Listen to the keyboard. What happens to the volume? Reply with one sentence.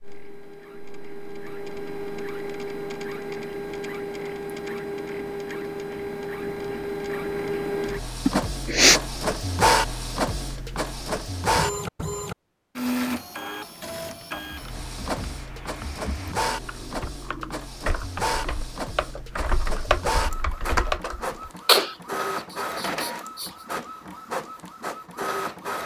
The volume of the keyboard goes up.